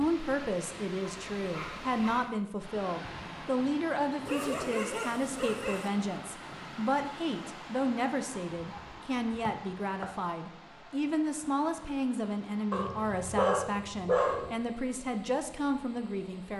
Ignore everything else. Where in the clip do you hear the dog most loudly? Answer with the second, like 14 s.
14 s.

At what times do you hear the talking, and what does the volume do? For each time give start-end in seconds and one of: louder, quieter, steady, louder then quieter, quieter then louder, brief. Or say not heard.
0.0-16.5 steady.